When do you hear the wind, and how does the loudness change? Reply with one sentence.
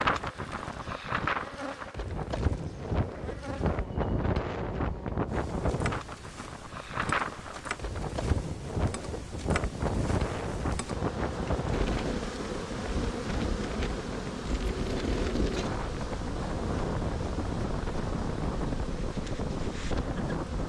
The wind can be heard from 0.0 to 20.6 s, at a steady volume.